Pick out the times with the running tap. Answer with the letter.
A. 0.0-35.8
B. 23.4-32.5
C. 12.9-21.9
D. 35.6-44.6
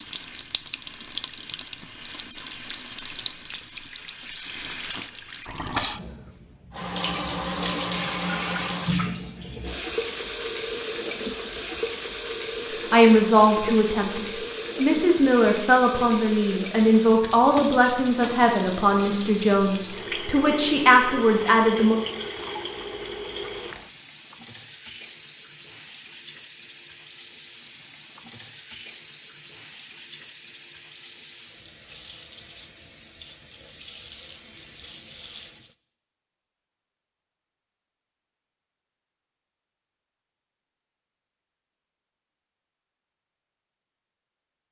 A.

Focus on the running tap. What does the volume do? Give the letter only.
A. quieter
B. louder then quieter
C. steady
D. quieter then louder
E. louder
A.